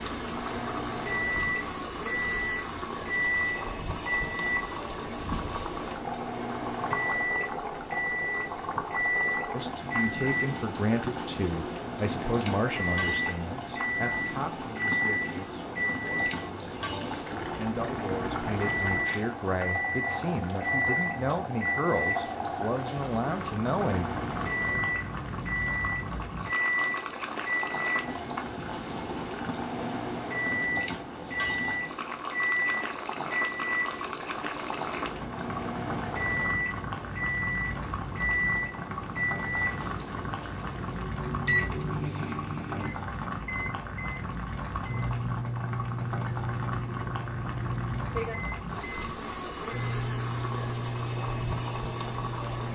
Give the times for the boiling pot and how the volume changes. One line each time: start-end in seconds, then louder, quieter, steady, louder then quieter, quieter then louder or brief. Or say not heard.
0.0-52.7 steady.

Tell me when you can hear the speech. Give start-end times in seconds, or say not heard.
9.5-24.1.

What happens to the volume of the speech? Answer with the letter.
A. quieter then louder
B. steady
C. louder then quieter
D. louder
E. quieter
A.